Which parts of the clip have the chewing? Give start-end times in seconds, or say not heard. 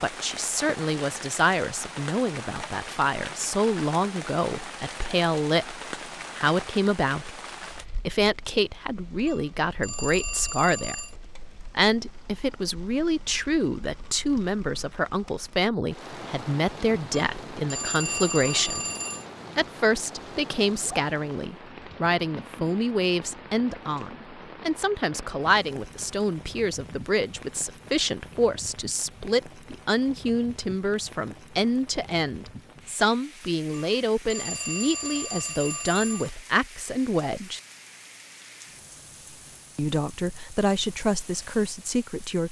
not heard.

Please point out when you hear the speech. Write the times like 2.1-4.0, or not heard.
0.0-7.4, 8.1-11.1, 11.7-18.8, 19.6-37.6, 39.8-42.4.